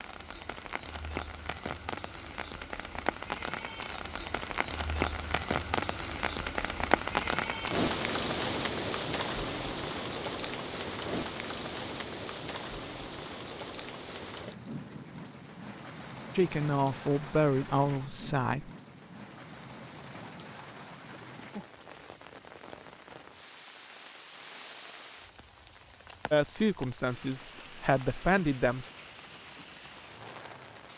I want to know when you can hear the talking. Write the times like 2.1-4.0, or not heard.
16.4-18.7, 26.3-28.9.